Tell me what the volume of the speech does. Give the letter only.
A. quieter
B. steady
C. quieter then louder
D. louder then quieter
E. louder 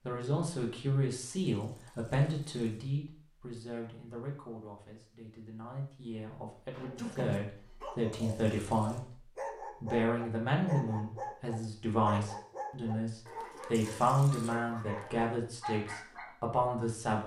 C.